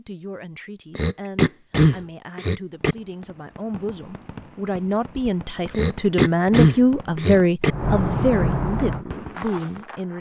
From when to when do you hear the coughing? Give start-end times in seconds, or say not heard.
0.9-3.0, 5.7-7.8.